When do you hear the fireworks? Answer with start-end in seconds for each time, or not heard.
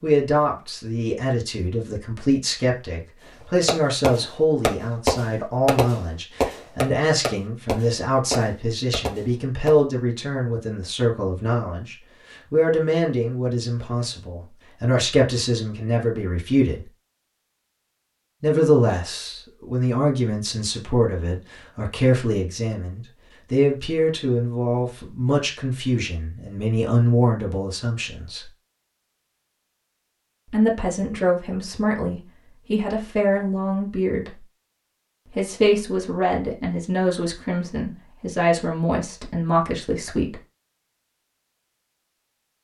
3.6-9.8.